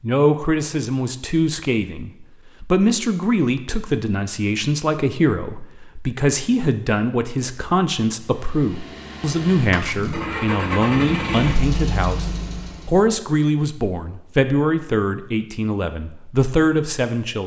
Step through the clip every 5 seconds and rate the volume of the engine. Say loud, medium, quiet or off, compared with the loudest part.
off, medium, loud, off.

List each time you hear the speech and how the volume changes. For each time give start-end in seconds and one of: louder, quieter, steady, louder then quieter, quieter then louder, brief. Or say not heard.
0.0-17.4 steady.